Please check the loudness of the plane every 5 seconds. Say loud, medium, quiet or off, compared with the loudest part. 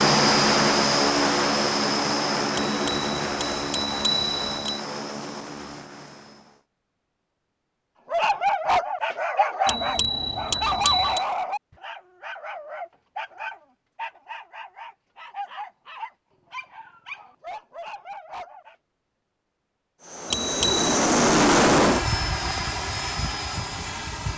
loud, quiet, off, off, loud.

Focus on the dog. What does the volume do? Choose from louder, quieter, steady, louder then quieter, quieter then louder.
quieter.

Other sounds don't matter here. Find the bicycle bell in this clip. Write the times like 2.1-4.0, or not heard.
2.5-4.8, 9.7-11.2, 20.3-21.0.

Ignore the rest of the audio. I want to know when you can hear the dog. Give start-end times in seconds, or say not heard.
8.1-18.8.